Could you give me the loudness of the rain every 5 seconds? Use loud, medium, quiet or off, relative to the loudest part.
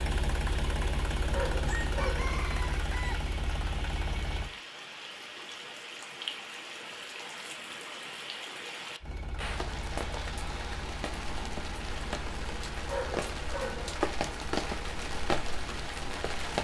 medium, medium, loud, loud.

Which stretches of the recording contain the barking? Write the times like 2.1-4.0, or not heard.
1.3-2.4, 12.8-13.9.